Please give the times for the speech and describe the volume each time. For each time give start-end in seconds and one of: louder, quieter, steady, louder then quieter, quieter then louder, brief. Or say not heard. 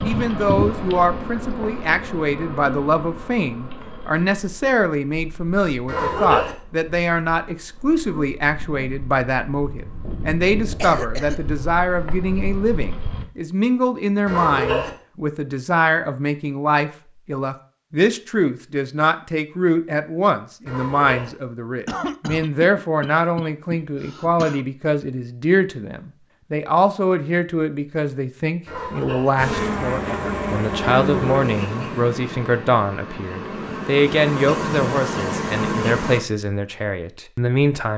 0.0-37.9 steady.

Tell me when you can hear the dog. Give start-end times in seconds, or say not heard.
5.8-6.5, 14.2-14.9, 20.6-21.3, 28.6-29.3.